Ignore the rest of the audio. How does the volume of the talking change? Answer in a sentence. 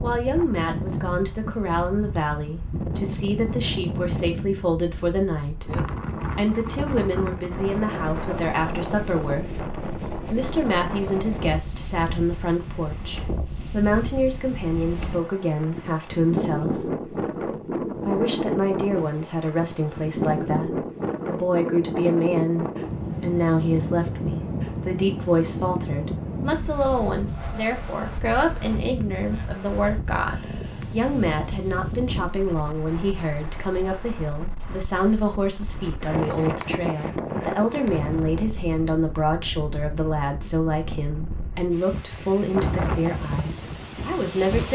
The volume of the talking stays about the same.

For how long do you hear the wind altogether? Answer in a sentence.
You can hear the wind for 45 seconds altogether.